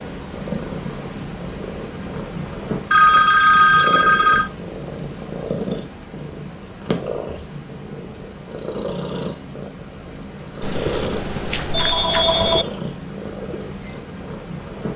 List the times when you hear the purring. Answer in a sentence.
The purring can be heard from 0.0 to 14.9 s.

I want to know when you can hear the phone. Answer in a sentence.
The phone can be heard from 2.9 to 4.5 s and from 10.6 to 12.7 s.